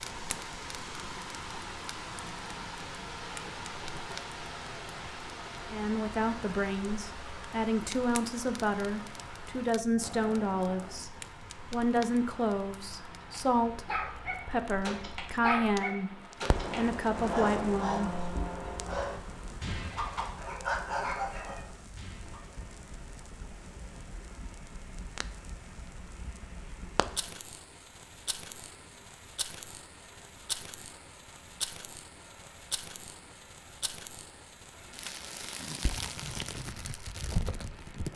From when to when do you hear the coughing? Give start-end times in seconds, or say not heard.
not heard.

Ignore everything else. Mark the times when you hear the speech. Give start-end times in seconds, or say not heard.
5.7-11.1, 11.7-16.1, 16.8-18.1.